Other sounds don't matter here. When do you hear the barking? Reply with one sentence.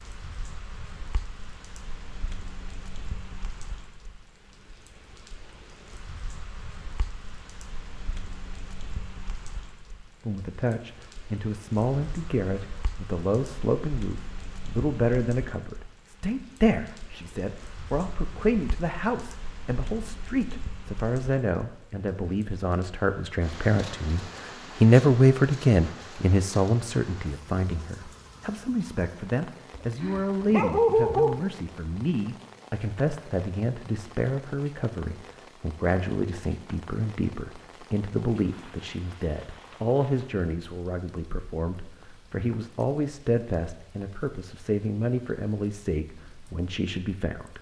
The barking can be heard from 29.7 to 31.5 s.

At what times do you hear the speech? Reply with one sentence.
You can hear the speech from 10.2 to 47.5 s.